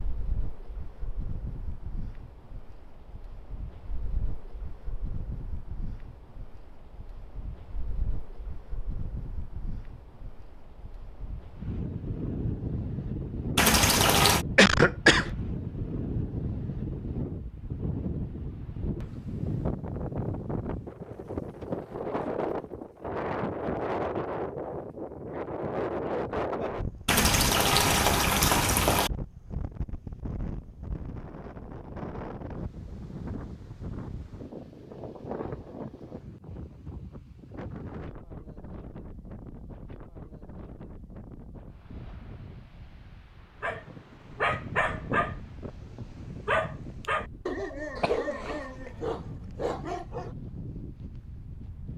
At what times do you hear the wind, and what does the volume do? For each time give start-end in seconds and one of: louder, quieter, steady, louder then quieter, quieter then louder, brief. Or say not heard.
0.0-51.9 louder then quieter.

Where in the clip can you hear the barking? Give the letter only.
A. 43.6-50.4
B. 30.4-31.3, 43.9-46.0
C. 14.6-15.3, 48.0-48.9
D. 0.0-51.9
A.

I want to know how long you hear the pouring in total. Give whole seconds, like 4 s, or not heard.
3 s.